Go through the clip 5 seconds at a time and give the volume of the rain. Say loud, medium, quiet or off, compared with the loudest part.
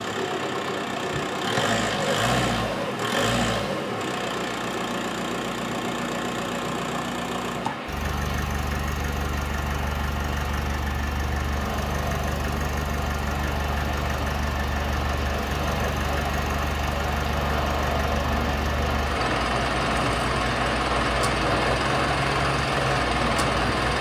medium, medium, medium, loud, loud.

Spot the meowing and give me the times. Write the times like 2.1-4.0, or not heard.
not heard.